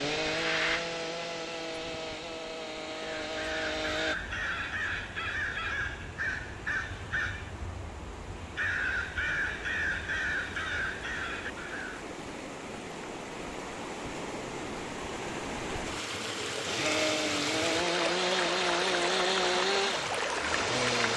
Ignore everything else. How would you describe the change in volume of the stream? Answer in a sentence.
The volume of the stream goes up.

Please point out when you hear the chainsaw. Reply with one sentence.
The chainsaw can be heard from 0.0 to 4.2 s and from 16.6 to 21.1 s.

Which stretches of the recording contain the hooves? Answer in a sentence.
The hooves can't be heard in this clip.